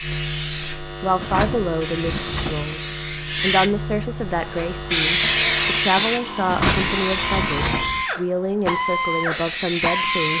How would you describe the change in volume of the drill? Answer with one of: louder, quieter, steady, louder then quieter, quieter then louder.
louder.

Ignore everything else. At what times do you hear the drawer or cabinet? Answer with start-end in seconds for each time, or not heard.
1.1-2.8, 6.5-8.1.